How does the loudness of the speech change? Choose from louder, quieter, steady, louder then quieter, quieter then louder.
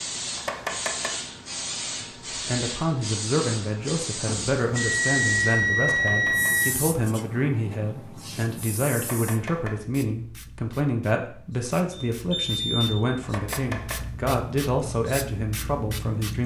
steady.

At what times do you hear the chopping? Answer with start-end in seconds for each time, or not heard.
0.3-1.2, 5.8-6.7, 8.9-9.8, 13.2-14.1.